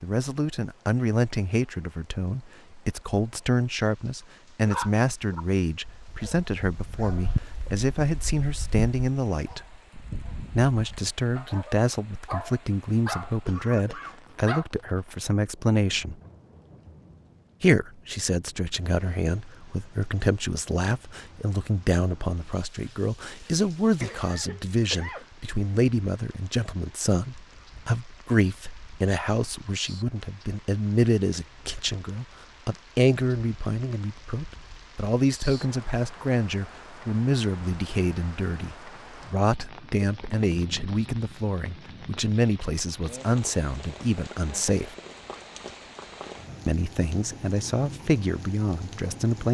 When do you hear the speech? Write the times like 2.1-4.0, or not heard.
0.0-9.7, 10.5-16.1, 17.6-45.0, 46.6-49.4.